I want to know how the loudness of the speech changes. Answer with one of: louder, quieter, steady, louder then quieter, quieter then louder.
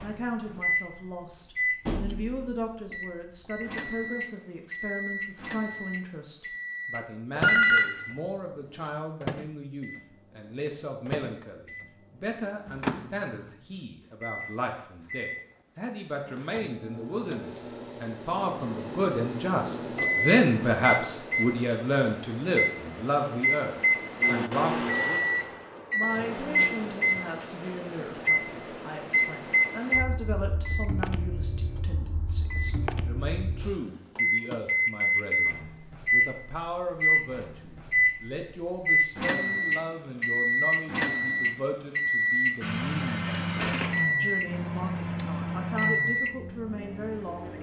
louder then quieter.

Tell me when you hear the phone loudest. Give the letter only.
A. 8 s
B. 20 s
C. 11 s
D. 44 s
A.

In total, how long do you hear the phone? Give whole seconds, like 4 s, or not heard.
2 s.